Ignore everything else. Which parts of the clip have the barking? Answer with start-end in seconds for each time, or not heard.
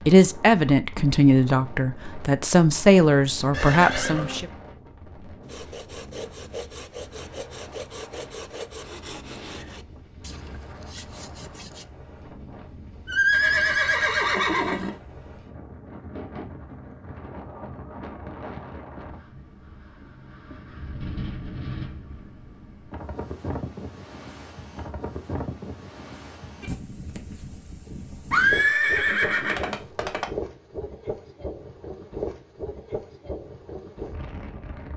not heard.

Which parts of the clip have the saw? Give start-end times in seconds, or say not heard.
5.5-11.8.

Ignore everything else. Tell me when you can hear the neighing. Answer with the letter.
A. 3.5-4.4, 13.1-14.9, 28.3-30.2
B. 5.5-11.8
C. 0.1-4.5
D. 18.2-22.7
A.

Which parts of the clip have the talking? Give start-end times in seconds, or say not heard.
0.1-4.5.